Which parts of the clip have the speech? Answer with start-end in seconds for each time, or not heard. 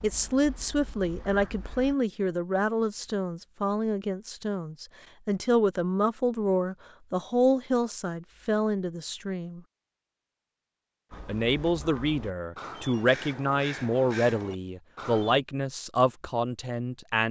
0.0-9.6, 11.2-17.2.